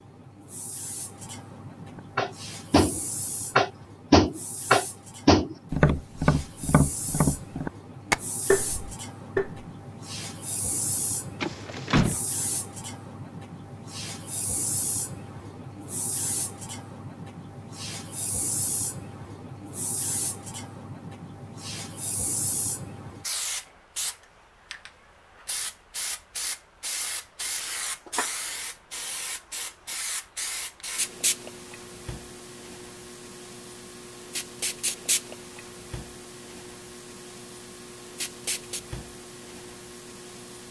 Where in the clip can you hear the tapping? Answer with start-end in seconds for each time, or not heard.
1.9-9.7.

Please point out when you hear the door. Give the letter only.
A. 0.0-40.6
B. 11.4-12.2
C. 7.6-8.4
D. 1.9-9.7
B.